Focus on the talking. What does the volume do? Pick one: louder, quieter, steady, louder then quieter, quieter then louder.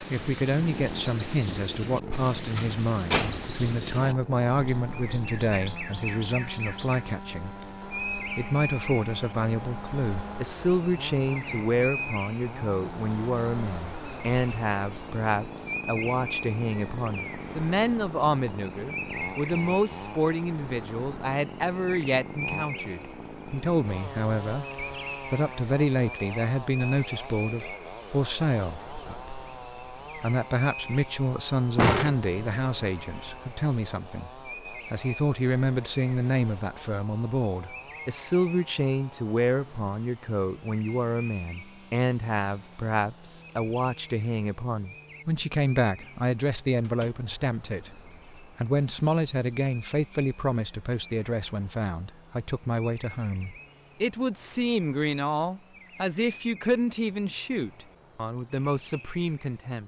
steady.